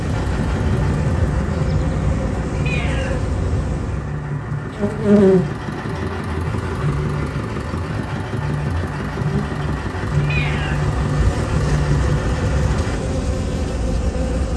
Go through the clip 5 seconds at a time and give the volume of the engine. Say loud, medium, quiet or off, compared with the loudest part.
medium, loud, loud.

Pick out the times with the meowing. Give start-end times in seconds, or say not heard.
2.5-3.2, 10.2-10.9.